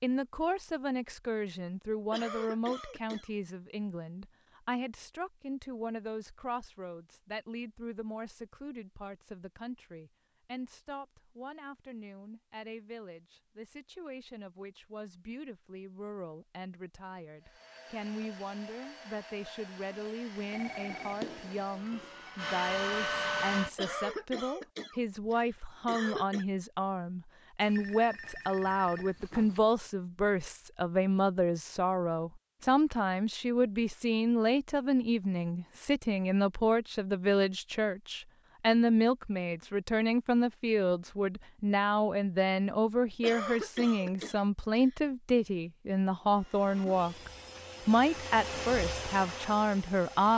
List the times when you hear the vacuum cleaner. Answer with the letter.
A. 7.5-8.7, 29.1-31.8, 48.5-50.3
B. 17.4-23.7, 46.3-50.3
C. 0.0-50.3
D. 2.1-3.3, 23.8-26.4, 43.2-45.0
B.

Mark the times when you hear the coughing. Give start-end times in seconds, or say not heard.
2.1-3.3, 23.8-26.4, 43.2-45.0.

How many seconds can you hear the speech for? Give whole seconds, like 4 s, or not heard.
50 s.